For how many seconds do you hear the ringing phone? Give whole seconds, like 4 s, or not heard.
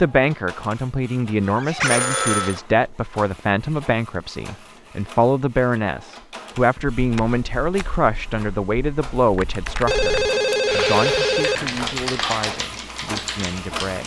3 s.